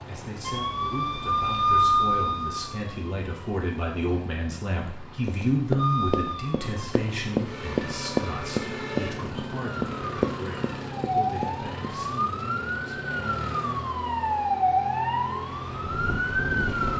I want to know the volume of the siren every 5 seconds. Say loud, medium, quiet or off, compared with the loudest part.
loud, medium, loud, loud.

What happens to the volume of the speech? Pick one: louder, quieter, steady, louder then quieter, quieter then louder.
louder then quieter.